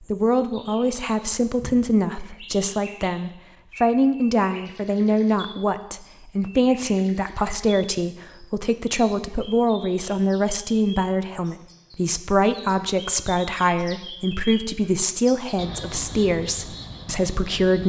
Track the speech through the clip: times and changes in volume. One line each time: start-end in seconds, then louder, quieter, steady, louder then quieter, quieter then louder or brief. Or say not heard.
0.0-17.8 steady.